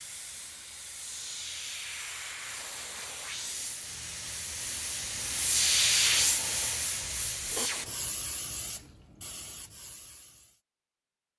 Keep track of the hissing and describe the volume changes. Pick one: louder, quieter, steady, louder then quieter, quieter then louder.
louder then quieter.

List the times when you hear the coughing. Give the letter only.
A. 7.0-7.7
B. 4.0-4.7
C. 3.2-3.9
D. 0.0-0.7
A.